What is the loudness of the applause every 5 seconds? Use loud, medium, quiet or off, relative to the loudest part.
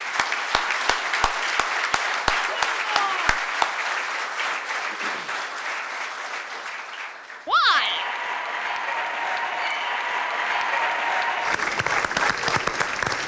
loud, medium, loud.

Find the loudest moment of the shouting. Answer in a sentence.
The loudest moment of the shouting is at 8 seconds.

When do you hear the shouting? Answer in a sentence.
The shouting can be heard from 2.5 to 3.4 s and from 7.5 to 8.1 s.